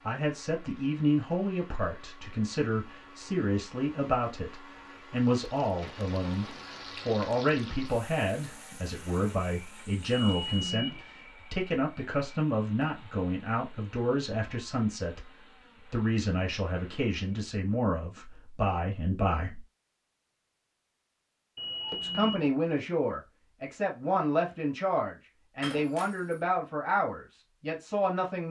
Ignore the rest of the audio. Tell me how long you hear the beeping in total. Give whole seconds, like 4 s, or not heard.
2 s.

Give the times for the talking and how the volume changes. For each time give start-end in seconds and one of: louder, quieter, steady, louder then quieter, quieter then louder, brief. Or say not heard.
0.1-19.6 steady
21.9-28.4 steady.